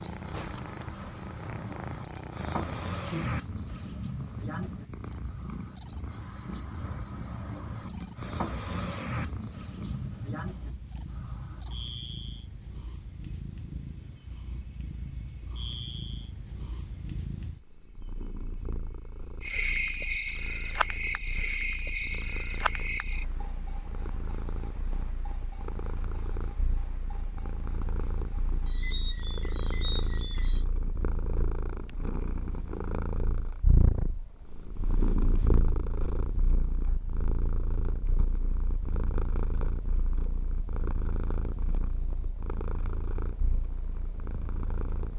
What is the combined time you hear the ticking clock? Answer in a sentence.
The ticking clock can't be heard in this clip.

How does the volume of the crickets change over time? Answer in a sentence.
The volume of the crickets goes down.